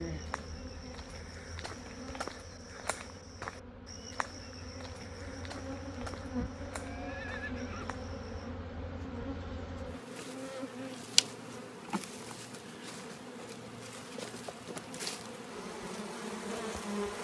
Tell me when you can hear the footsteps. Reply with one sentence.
You can hear the footsteps from 0.0 to 8.5 s.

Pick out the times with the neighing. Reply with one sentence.
You can hear the neighing from 6.8 to 8.1 s.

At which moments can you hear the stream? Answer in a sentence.
You can't hear the stream here.